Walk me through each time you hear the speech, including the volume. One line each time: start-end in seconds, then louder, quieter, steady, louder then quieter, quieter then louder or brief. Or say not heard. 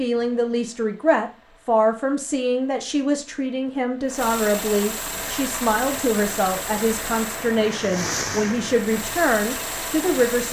0.0-10.4 steady.